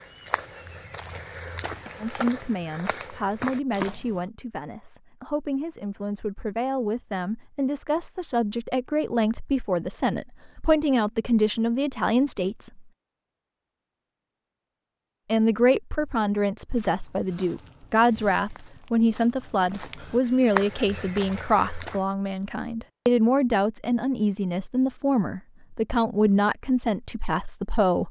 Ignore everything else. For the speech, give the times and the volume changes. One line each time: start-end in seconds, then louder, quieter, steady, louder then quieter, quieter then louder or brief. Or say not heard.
2.0-12.8 louder
15.2-28.0 steady.